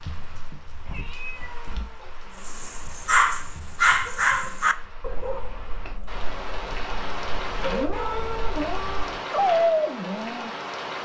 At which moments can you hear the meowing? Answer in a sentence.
The meowing can be heard from 0.8 to 2.1 s and from 7.3 to 9.2 s.